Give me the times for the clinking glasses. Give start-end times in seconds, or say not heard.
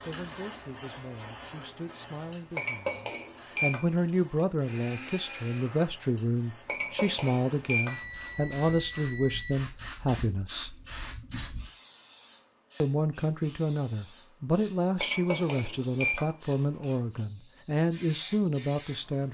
2.5-4.5, 6.7-8.6, 15.0-16.9.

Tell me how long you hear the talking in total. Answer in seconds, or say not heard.
17 s.